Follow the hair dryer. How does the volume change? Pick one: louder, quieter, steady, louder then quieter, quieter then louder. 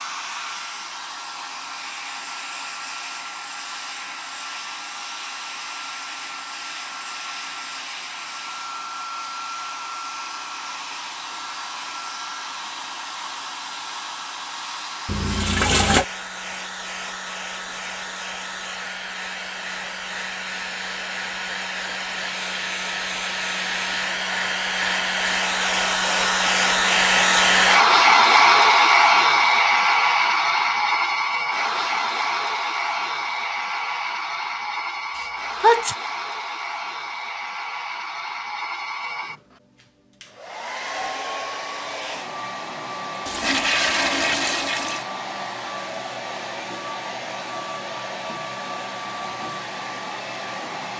louder then quieter.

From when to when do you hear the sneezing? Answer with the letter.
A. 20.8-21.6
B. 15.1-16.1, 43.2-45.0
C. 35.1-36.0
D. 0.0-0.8
C.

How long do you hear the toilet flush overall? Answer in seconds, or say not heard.
3 s.